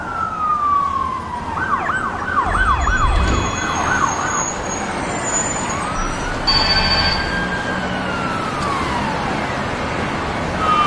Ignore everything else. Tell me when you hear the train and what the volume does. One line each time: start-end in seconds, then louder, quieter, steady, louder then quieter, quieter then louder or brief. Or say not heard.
not heard.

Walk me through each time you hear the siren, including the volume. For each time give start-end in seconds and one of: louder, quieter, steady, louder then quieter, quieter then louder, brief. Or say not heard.
0.0-10.8 steady.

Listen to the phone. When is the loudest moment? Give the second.
7 s.